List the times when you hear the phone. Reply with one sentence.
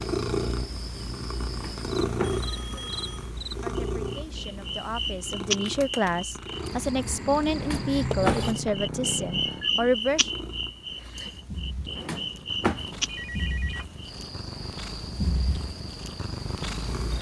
You can hear the phone from 2.2 to 3.3 s, from 8.3 to 9.8 s and from 13.1 to 13.8 s.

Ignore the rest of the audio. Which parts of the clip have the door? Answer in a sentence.
The door can be heard from 1.5 to 2.5 s, from 7.5 to 8.6 s and from 11.9 to 13.0 s.